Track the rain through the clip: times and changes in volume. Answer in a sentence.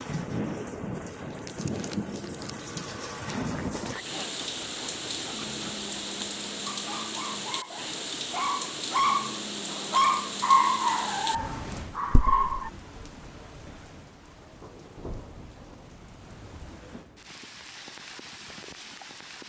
The rain can be heard from 0.0 to 19.4 s, getting quieter.